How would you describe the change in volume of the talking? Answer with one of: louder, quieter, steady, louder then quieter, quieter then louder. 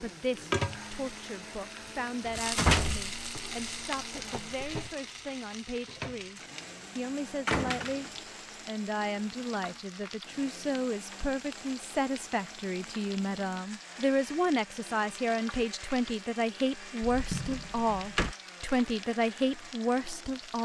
louder.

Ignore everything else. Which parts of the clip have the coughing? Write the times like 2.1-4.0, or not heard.
not heard.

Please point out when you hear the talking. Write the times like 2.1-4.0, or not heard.
0.0-20.6.